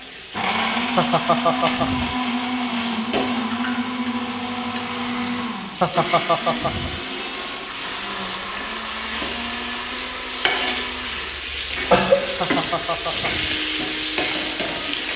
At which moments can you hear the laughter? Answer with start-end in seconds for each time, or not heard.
0.9-2.1, 5.8-7.0, 12.4-13.6.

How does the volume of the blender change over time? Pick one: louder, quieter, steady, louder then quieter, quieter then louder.
quieter.